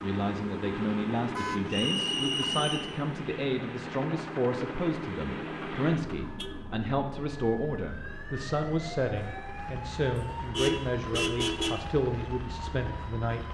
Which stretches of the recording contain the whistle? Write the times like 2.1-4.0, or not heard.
1.6-2.9.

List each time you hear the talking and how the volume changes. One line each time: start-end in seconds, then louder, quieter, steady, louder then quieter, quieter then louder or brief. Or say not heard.
0.0-13.4 steady.